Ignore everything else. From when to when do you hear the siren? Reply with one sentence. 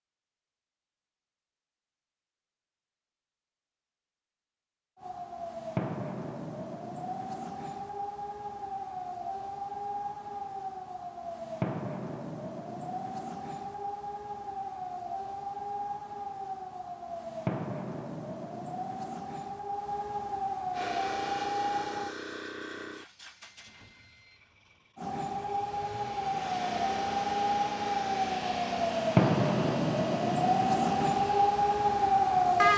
You can hear the siren from 5.0 to 22.1 s and from 24.9 to 32.7 s.